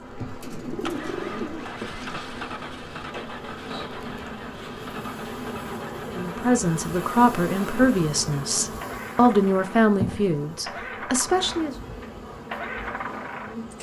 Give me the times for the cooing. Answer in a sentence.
The cooing can be heard from 0.4 to 2.3 s.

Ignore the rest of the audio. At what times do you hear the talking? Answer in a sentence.
You can hear the talking from 6.0 to 11.8 s.